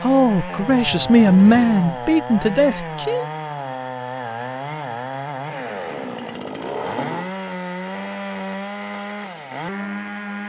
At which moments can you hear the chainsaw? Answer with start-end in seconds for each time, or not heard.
0.0-10.4.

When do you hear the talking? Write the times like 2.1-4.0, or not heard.
0.0-3.2.